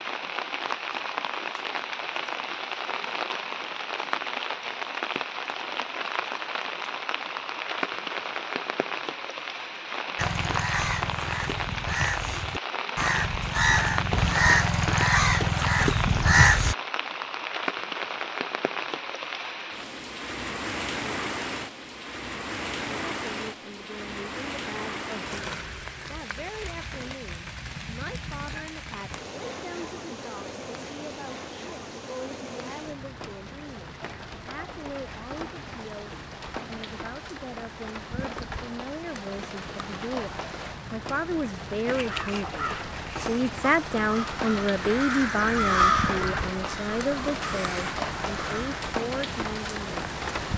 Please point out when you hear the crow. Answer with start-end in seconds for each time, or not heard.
10.2-16.8, 41.8-49.0.